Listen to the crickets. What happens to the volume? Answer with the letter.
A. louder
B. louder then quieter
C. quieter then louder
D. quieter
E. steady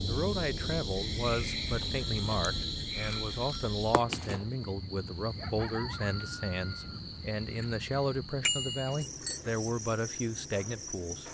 D.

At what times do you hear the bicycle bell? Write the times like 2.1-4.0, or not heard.
2.0-3.7, 8.4-9.4.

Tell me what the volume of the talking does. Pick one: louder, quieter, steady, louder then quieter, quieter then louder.
steady.